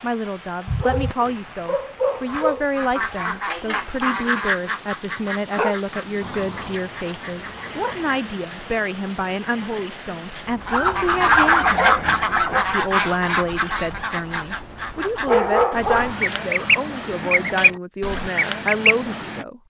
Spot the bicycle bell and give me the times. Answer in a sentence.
You can hear the bicycle bell from 6.2 to 8.2 s and from 15.8 to 17.8 s.